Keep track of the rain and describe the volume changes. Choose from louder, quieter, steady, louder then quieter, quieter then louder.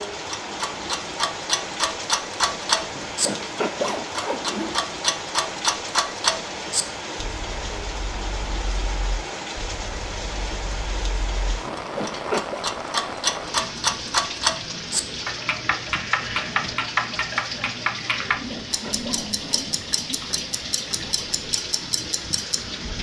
steady.